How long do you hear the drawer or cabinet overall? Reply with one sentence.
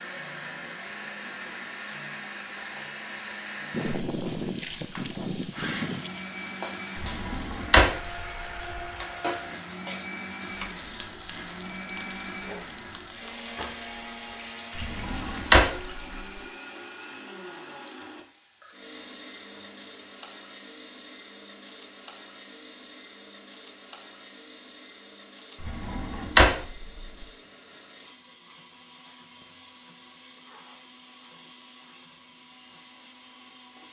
The drawer or cabinet can be heard for 4 seconds in total.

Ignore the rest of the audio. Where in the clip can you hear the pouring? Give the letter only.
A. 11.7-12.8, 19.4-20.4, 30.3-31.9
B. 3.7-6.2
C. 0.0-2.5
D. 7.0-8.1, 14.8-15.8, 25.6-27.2
B.